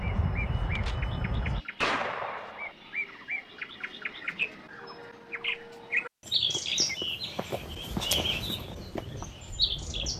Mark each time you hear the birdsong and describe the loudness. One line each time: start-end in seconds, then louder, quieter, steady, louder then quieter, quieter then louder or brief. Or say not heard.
0.0-10.1 louder.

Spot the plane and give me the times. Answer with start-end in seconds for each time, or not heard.
0.0-1.6, 7.5-10.1.